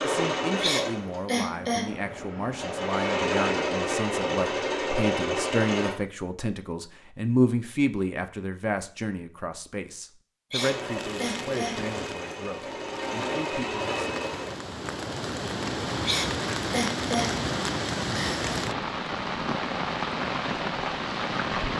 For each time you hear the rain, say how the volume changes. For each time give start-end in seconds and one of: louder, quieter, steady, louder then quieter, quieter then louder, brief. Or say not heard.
10.8-21.7 louder.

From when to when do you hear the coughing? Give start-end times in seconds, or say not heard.
0.6-1.9, 10.5-11.9, 16.1-17.4.